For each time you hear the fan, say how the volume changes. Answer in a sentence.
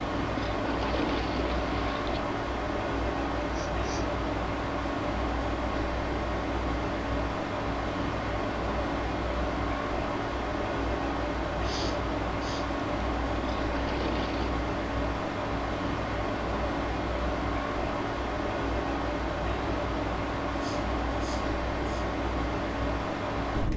The fan can be heard from 0.0 to 23.7 s, at a steady volume.